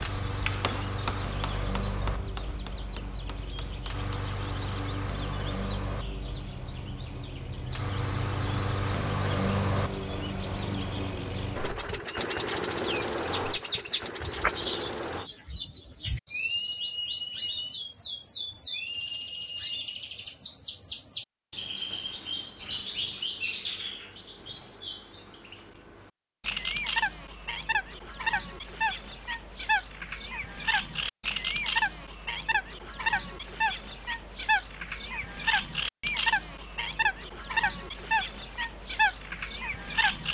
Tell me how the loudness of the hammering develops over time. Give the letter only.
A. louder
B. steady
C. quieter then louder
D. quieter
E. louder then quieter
D.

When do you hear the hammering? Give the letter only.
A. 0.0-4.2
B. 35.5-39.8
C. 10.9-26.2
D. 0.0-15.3
A.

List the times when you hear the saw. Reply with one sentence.
You can't hear the saw here.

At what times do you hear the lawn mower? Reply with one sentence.
You can hear the lawn mower from 0.0 to 15.3 s.